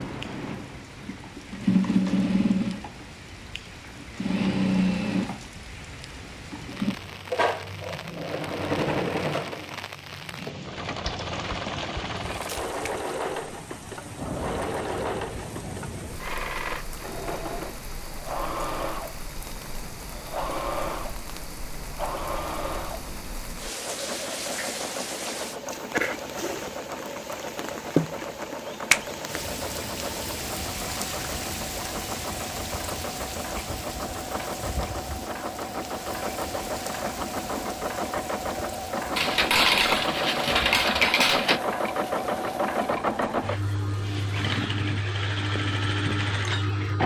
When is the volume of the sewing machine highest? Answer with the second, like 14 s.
2 s.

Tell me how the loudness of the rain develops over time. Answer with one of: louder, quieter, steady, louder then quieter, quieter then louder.
louder then quieter.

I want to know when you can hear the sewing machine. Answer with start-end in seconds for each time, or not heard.
0.0-47.0.